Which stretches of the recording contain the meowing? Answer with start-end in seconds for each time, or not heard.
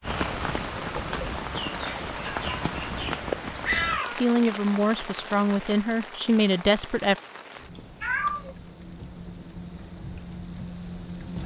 2.5-4.2, 7.8-8.6.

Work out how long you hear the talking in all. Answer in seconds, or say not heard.
3 s.